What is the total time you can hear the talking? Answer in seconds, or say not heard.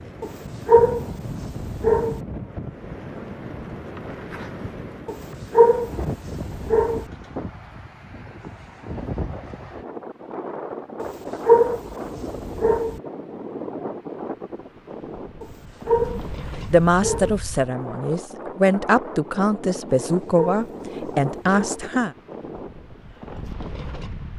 6 s.